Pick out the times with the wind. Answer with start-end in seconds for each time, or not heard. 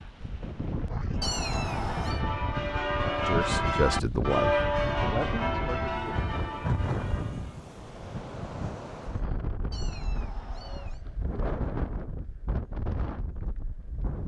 0.0-14.2.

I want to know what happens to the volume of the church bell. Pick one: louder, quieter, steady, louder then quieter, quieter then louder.
louder then quieter.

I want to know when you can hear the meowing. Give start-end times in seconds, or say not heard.
1.2-2.2, 9.7-11.0.